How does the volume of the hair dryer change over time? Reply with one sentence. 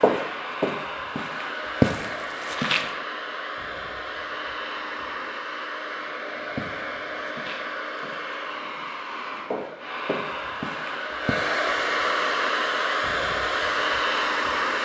The volume of the hair dryer goes up.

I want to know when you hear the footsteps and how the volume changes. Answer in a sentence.
You can hear the footsteps briefly from 0.0 to 3.0 s; and from 6.0 to 11.3 s, getting quieter then louder.